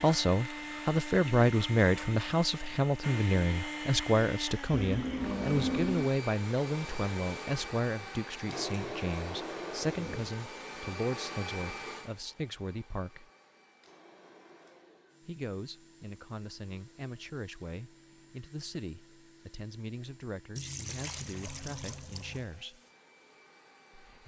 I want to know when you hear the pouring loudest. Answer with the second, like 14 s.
6 s.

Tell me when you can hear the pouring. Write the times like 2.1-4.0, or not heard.
4.7-6.1, 20.6-22.4.